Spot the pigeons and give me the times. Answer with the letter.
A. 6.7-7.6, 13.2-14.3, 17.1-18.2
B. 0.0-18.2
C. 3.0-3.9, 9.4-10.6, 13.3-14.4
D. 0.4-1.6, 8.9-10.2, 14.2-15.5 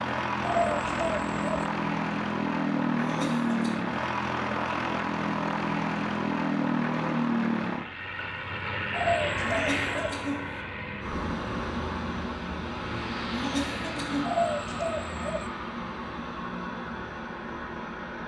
D.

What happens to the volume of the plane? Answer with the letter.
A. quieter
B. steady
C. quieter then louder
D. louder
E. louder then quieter
A.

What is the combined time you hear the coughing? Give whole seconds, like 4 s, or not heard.
3 s.